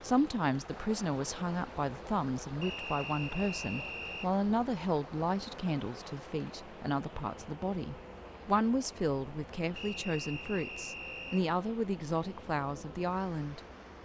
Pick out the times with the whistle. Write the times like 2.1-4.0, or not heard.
2.6-4.3, 9.8-11.4.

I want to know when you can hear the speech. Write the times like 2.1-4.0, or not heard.
0.0-14.0.